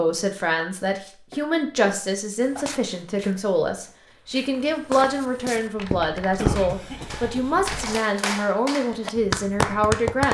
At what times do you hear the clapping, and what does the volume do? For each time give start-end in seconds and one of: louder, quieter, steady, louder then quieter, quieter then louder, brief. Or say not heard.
5.6-10.2 louder.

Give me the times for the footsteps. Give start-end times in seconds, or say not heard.
2.4-8.0.